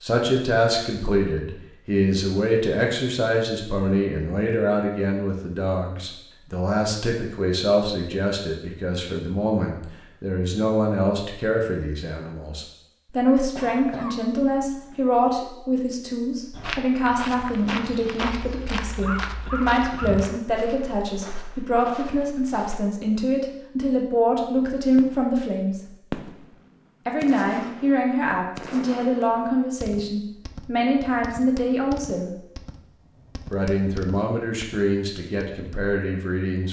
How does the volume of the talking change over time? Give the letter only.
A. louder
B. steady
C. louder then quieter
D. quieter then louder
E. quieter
B.